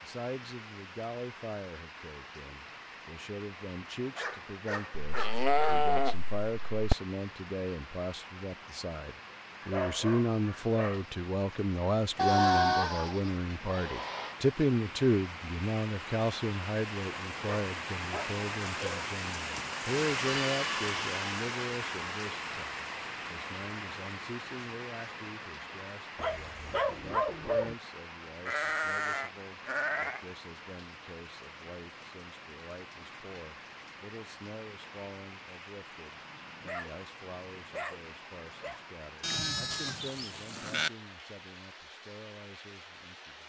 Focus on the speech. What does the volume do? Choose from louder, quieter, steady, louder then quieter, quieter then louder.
louder then quieter.